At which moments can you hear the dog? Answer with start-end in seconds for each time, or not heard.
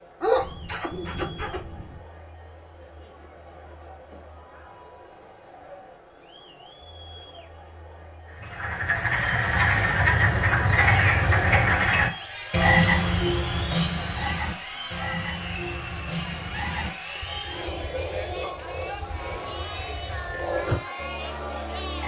0.2-1.9.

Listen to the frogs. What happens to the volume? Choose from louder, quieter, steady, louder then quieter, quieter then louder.
quieter.